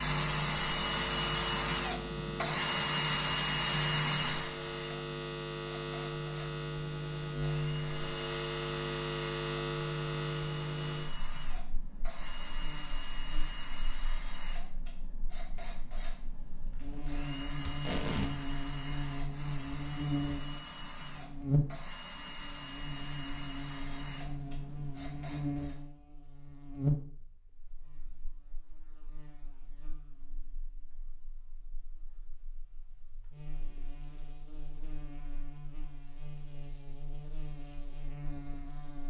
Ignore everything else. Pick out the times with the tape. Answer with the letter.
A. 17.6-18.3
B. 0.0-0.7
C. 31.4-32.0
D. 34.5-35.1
A.